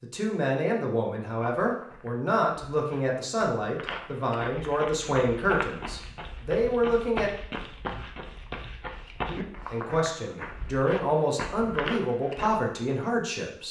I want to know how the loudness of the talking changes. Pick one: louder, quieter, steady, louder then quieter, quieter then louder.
steady.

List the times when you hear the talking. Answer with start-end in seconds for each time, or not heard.
0.0-7.3, 9.7-13.6.